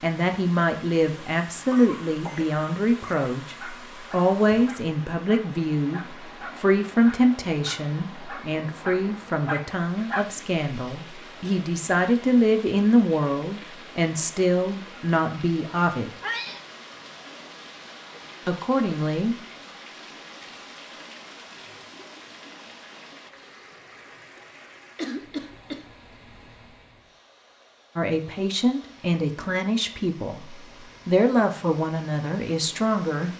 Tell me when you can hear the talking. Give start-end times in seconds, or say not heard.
0.0-16.1, 18.4-19.4, 27.9-33.3.